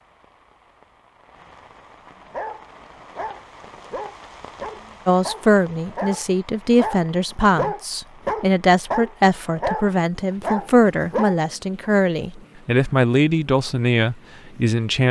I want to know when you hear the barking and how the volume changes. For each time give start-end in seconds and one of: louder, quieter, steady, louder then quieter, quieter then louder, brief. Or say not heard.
2.3-11.9 louder.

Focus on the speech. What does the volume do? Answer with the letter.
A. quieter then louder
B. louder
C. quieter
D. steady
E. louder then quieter
D.